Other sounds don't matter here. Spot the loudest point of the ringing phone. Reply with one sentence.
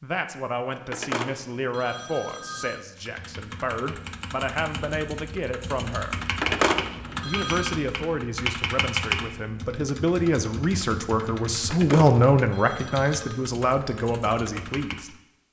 The loudest moment of the ringing phone is at 7 seconds.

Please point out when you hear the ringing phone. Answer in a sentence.
You can hear the ringing phone from 0.7 to 2.8 s, from 6.2 to 7.8 s and from 11.5 to 13.4 s.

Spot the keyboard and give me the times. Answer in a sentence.
The keyboard can be heard from 3.0 to 15.2 s.